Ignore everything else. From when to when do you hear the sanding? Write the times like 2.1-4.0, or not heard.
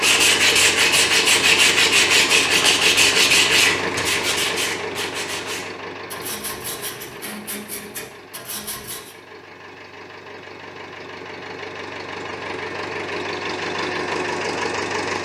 0.0-9.2.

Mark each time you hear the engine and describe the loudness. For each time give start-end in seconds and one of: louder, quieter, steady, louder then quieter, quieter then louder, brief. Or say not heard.
0.0-15.1 quieter then louder.